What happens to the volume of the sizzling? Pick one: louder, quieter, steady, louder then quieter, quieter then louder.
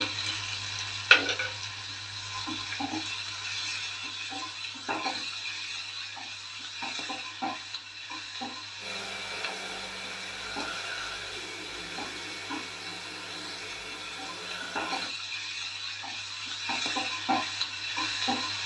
quieter then louder.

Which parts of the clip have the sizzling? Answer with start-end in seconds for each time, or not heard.
0.0-18.6.